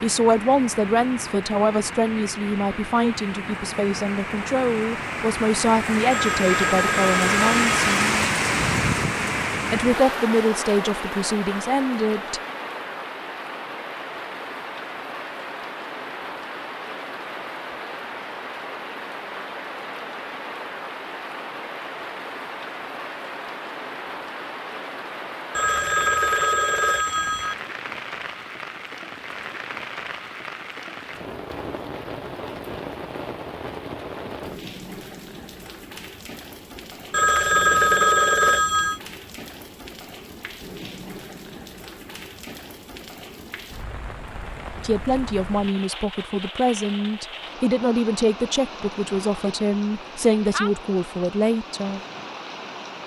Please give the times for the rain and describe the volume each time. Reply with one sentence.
The rain can be heard from 0.0 to 53.0 s, getting quieter.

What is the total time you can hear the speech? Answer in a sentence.
The speech can be heard for 18 seconds in total.